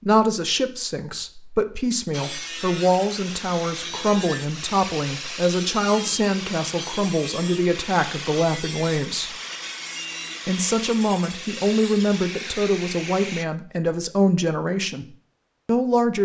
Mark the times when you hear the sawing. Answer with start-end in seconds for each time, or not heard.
2.1-13.4.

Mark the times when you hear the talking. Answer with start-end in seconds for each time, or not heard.
0.0-9.3, 10.4-15.1, 15.7-16.2.